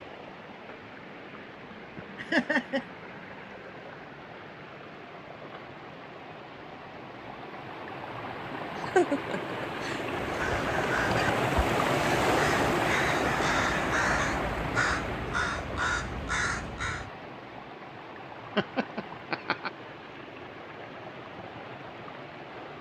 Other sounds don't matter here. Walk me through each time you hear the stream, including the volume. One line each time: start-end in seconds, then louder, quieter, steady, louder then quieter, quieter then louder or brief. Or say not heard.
0.0-22.7 louder then quieter.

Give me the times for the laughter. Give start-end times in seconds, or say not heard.
2.1-2.9, 8.8-10.1, 18.6-19.7.